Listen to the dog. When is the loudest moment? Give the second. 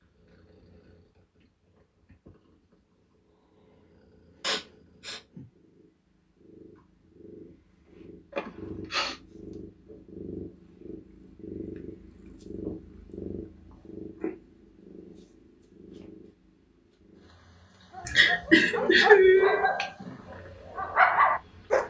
21 s.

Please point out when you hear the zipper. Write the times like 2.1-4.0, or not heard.
not heard.